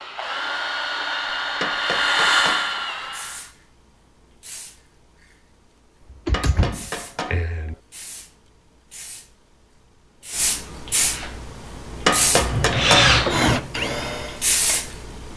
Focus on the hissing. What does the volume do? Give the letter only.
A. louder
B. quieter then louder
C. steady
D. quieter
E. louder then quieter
A.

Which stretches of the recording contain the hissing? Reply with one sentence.
You can hear the hissing from 3.0 to 15.3 s.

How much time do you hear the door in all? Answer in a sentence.
You can hear the door for 2 seconds altogether.